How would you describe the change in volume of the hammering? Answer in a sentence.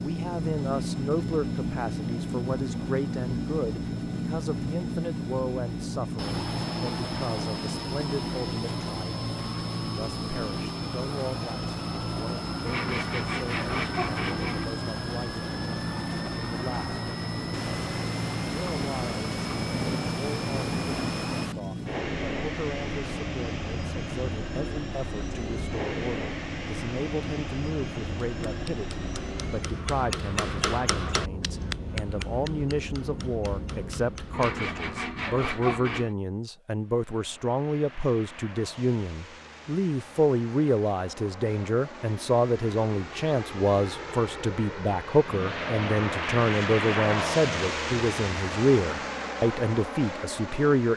The volume of the hammering goes up, then down.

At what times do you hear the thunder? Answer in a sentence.
You can hear the thunder from 17.5 to 21.6 s.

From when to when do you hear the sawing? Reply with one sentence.
The sawing can be heard from 12.7 to 14.7 s and from 34.3 to 36.1 s.